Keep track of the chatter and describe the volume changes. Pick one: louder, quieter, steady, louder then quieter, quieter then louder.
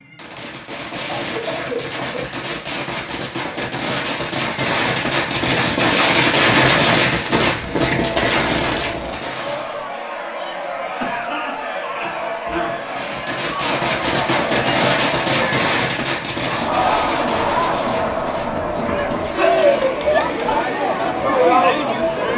louder.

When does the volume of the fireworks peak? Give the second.
7 s.